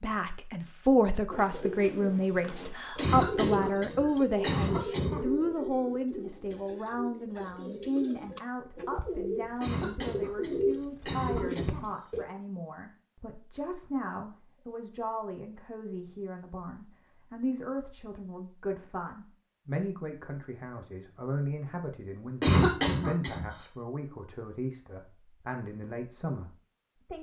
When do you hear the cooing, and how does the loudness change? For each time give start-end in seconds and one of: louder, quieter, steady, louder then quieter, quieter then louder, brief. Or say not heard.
1.3-12.2 quieter then louder.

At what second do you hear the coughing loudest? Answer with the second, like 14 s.
23 s.